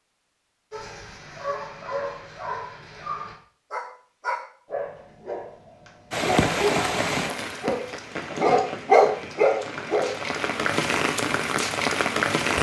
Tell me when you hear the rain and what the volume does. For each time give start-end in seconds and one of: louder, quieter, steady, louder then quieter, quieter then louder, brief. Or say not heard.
6.1-12.5 quieter then louder.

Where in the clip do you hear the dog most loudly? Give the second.
9 s.